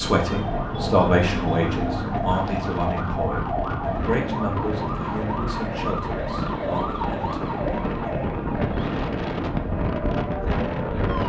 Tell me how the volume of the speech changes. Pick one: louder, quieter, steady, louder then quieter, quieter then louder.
quieter.